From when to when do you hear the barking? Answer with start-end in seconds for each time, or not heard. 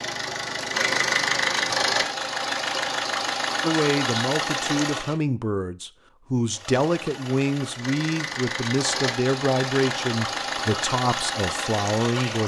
not heard.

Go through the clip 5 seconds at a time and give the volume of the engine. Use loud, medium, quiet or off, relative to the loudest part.
loud, medium, loud.